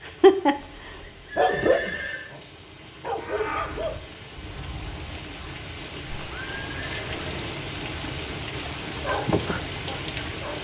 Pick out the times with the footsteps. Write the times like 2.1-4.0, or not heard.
not heard.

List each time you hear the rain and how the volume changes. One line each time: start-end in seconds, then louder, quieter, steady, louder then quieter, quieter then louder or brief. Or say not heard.
0.0-10.5 louder.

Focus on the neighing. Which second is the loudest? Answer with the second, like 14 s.
2 s.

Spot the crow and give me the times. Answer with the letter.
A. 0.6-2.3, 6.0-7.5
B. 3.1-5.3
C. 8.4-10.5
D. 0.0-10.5
B.